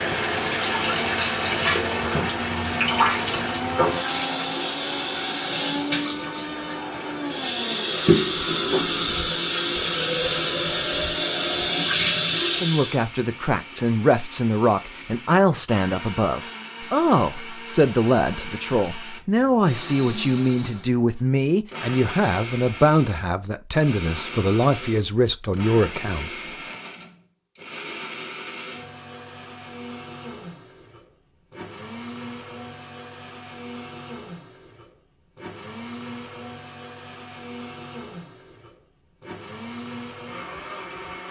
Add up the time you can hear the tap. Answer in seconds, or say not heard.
13 s.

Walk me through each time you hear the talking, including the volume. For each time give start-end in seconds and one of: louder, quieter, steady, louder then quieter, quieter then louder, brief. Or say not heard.
12.6-26.3 steady.